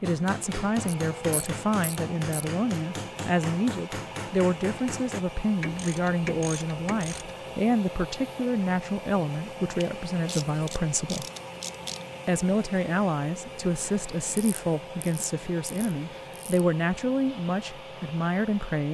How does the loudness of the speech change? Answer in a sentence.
The volume of the speech stays about the same.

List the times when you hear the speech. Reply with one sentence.
The speech can be heard from 0.0 to 11.2 s and from 12.2 to 18.8 s.